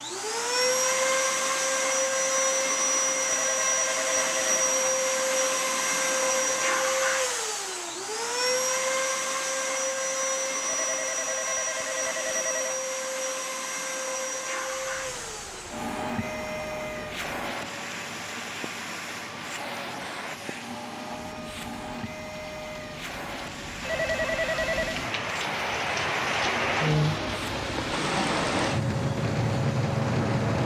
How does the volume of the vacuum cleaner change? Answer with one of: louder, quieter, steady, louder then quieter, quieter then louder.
quieter.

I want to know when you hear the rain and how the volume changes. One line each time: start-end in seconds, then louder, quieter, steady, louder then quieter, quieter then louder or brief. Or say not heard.
14.6-30.6 louder.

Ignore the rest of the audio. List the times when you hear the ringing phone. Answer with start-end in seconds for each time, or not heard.
3.2-4.5, 10.6-12.7, 23.8-25.0.